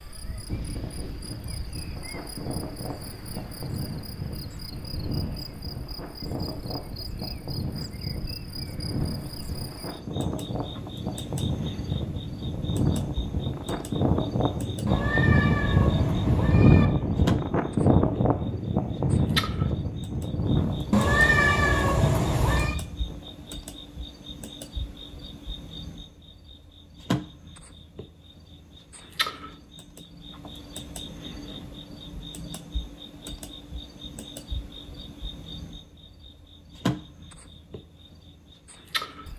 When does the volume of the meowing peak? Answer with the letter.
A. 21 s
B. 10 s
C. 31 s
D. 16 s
A.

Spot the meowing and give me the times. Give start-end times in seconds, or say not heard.
14.8-16.9, 20.9-22.8.